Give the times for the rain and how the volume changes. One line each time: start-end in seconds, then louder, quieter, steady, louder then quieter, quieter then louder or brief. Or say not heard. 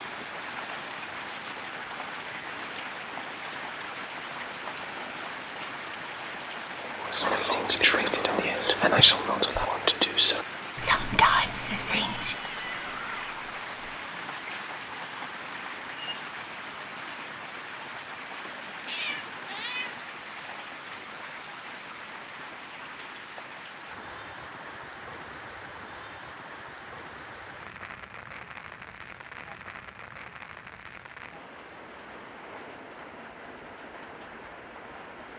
0.0-35.3 quieter.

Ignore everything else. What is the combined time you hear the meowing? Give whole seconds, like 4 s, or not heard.
3 s.